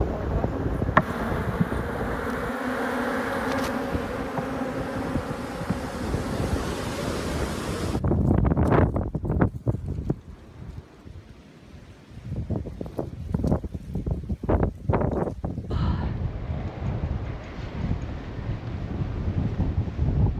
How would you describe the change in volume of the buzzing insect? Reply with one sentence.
The loudness of the buzzing insect goes down.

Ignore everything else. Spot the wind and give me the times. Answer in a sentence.
The wind can be heard from 0.0 to 20.3 s.